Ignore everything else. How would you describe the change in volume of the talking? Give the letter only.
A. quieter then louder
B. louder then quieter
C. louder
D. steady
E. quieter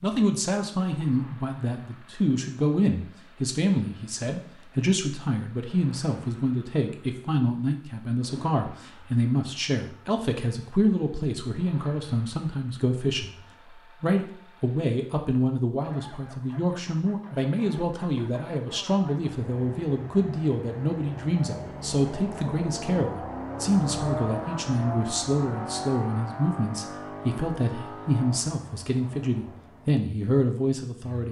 D.